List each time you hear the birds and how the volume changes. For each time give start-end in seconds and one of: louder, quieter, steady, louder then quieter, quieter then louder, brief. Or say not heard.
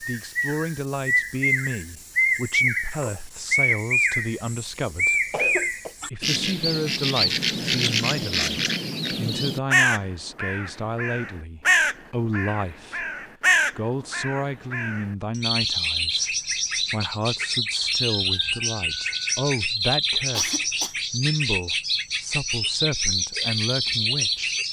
0.0-24.6 steady.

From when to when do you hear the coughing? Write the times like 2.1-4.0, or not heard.
5.3-5.9, 20.3-20.9.